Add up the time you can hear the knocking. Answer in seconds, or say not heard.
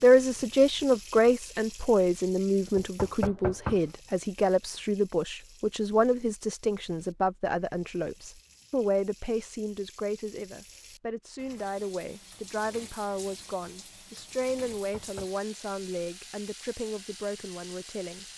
2 s.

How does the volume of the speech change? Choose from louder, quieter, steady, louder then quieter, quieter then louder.
quieter.